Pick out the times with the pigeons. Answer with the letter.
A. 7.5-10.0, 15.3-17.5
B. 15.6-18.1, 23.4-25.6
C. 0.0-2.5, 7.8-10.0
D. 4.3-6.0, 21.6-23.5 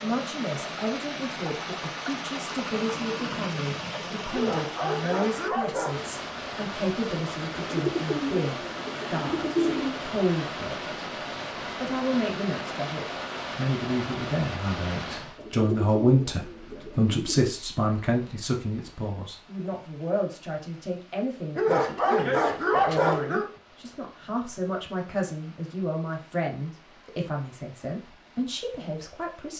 A.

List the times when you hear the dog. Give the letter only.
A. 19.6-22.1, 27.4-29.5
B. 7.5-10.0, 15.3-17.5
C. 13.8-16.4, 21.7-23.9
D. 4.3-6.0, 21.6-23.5
D.